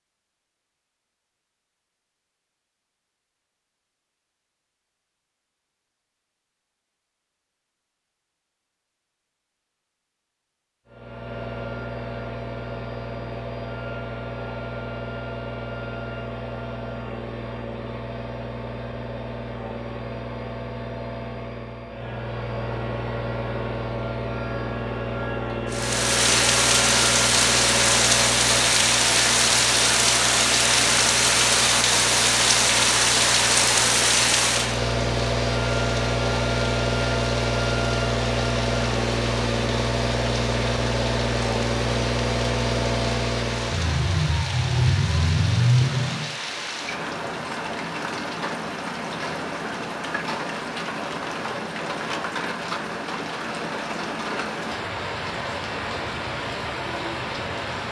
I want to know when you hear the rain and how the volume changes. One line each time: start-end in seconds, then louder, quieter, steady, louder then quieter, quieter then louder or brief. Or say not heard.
25.7-57.8 quieter.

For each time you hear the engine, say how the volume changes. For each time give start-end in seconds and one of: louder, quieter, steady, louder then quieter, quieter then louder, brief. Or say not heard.
10.8-46.4 louder.